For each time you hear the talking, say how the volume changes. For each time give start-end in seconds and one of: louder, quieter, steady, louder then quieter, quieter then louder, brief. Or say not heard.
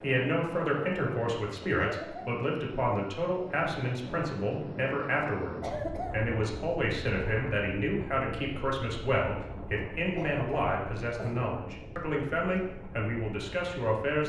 0.0-14.2 steady.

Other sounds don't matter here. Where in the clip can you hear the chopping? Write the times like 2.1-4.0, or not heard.
not heard.